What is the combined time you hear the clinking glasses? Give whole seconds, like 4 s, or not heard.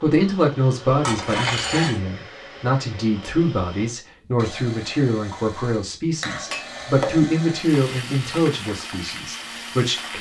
2 s.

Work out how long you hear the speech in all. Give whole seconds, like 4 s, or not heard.
10 s.